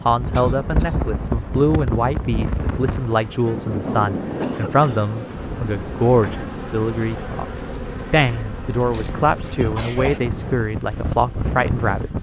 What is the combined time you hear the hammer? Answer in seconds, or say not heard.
not heard.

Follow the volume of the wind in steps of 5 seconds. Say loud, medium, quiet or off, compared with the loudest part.
loud, medium, loud.